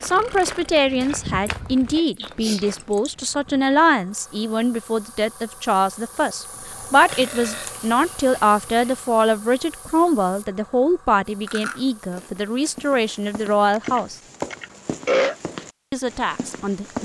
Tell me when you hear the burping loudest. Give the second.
15 s.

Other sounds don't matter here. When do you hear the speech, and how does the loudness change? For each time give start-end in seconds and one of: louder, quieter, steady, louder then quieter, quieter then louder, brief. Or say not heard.
0.0-14.2 steady
15.9-17.0 brief.